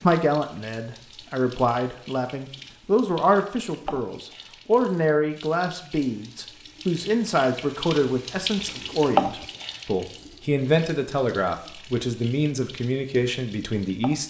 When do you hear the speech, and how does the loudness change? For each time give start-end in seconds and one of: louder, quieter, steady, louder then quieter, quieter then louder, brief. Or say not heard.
0.0-14.2 steady.